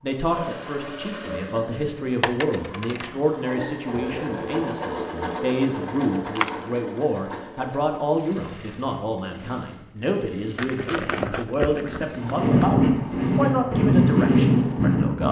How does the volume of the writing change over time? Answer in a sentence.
The loudness of the writing goes up.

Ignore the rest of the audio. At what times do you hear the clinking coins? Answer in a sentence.
The clinking coins can be heard from 2.2 to 3.1 s, from 6.2 to 6.7 s and from 10.6 to 12.7 s.